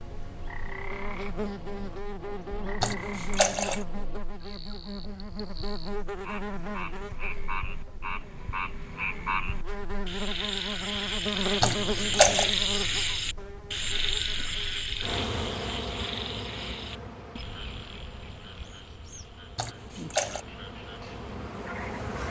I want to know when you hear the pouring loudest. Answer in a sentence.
The loudest moment of the pouring is at 12 seconds.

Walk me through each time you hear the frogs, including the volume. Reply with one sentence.
You can hear the frogs from 0.0 to 22.2 s, getting louder then quieter.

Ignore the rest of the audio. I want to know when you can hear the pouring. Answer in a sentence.
You can hear the pouring from 2.8 to 3.8 s, from 11.6 to 12.5 s and from 19.6 to 20.4 s.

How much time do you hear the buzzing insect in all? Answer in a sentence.
You can hear the buzzing insect for 22 seconds altogether.